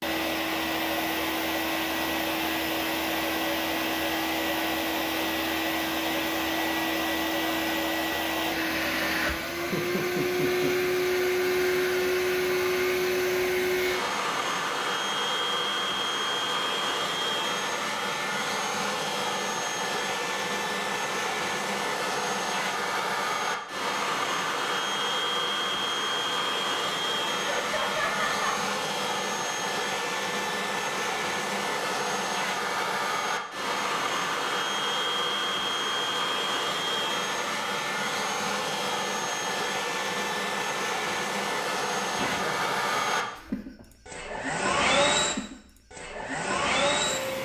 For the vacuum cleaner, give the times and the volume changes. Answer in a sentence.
The vacuum cleaner can be heard from 0.0 to 47.3 s, at a steady volume.